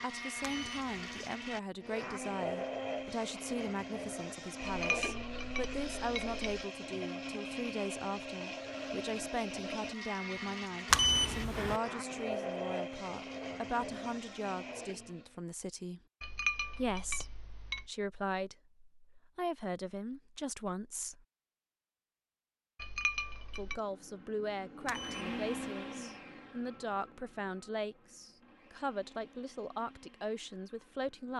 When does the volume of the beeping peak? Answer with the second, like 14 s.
11 s.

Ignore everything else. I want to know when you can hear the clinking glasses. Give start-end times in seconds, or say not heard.
4.6-6.4, 16.2-17.9, 22.8-23.8.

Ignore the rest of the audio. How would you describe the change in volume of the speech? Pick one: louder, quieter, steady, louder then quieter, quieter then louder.
steady.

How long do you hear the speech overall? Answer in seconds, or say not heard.
28 s.